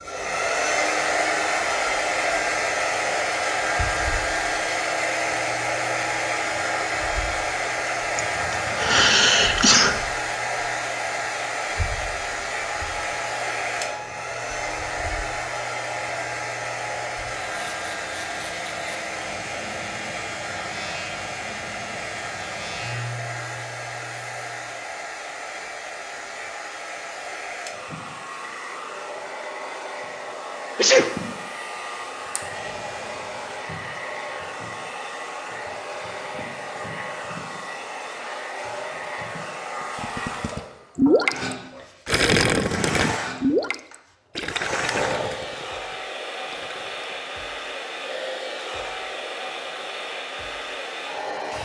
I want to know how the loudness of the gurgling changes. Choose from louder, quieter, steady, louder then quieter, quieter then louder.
quieter.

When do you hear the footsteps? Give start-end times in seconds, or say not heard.
not heard.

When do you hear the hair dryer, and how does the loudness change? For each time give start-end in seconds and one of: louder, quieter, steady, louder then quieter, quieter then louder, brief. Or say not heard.
0.0-51.5 quieter.